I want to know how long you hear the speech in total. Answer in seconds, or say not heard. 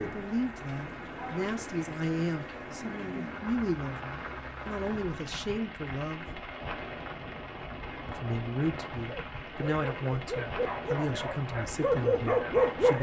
11 s.